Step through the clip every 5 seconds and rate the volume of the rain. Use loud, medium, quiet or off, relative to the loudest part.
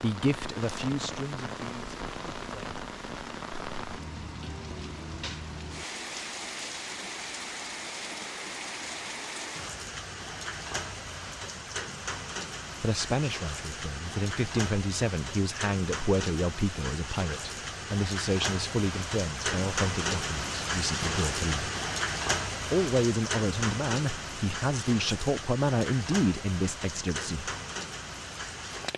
medium, medium, medium, loud, loud, medium.